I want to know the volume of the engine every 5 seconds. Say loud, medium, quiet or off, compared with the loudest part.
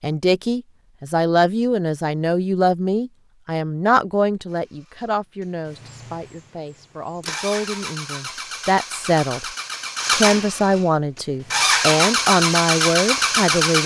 off, quiet, loud.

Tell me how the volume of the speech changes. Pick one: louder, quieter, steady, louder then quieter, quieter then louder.
quieter then louder.